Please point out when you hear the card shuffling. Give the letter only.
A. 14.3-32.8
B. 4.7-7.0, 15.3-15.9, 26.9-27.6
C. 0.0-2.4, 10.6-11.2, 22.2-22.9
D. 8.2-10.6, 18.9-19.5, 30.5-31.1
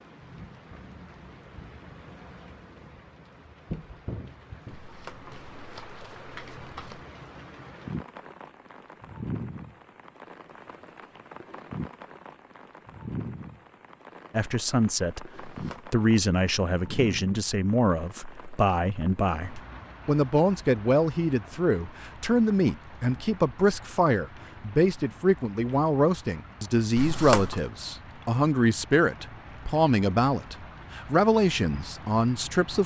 B.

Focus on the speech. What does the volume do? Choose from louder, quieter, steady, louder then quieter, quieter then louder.
steady.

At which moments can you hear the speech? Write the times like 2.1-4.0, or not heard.
14.3-32.8.